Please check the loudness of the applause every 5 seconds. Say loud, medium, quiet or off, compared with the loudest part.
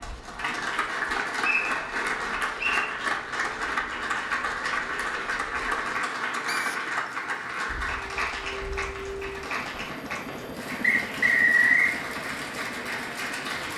loud, loud, medium.